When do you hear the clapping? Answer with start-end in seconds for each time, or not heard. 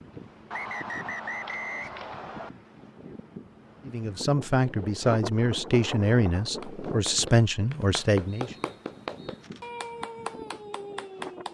6.4-11.4.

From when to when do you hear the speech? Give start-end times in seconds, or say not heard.
3.9-8.6.